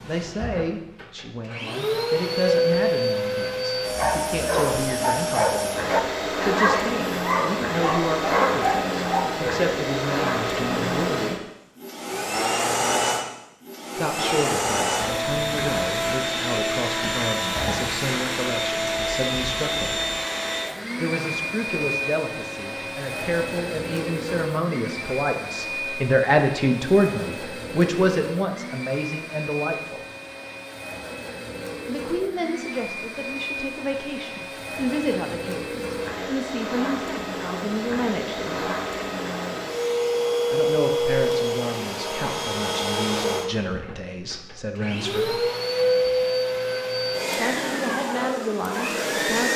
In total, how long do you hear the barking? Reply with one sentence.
You can hear the barking for 6 seconds altogether.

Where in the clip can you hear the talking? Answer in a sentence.
The talking can be heard from 0.0 to 11.4 s, from 13.9 to 20.0 s, from 21.0 to 30.1 s, from 31.9 to 38.8 s, from 40.5 to 45.4 s and from 47.2 to 49.5 s.